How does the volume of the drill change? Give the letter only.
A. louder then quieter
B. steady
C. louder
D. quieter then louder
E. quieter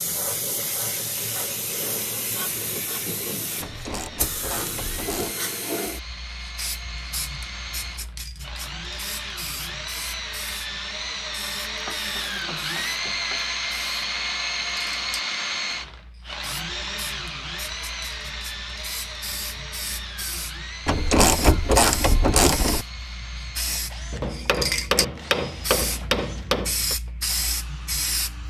A.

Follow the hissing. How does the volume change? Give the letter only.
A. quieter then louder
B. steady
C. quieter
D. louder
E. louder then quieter
A.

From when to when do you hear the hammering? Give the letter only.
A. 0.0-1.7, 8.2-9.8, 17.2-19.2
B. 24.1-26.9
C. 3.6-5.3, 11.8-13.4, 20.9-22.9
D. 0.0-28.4
B.